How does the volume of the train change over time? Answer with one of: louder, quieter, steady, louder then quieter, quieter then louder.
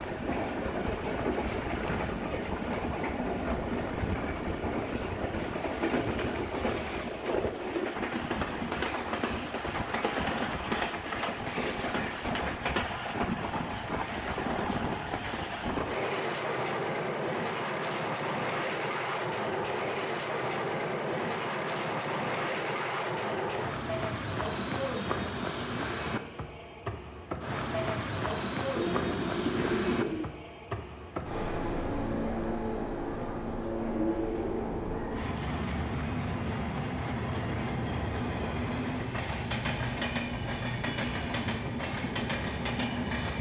steady.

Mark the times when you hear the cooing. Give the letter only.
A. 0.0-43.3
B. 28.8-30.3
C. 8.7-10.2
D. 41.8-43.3
B.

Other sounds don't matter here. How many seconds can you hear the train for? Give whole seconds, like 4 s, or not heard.
43 s.